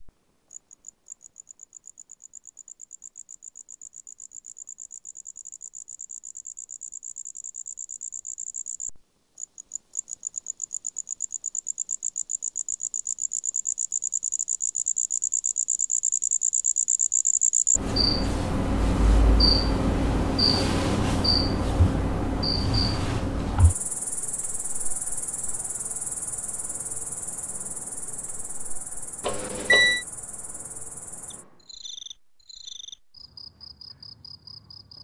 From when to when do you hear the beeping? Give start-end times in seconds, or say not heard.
29.2-30.1.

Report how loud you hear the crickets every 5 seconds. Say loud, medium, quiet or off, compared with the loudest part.
quiet, quiet, medium, loud, loud, quiet, quiet.